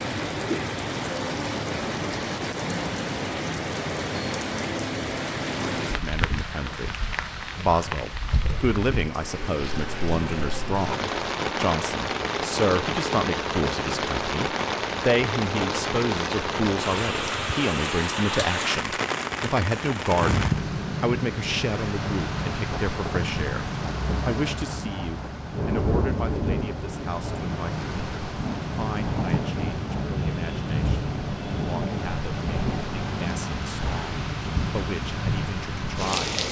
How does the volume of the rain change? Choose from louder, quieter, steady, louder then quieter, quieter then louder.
steady.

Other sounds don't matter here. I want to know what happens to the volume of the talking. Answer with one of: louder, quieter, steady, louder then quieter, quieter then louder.
quieter.